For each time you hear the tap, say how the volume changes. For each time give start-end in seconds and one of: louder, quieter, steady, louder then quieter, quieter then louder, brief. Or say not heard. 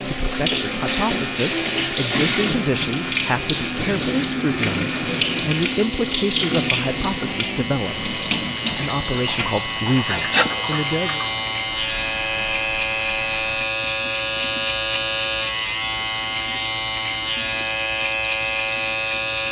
0.0-19.4 quieter.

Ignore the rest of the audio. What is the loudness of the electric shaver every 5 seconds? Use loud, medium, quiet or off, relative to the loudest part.
medium, medium, loud, loud.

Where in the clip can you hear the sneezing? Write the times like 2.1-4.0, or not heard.
10.1-10.6.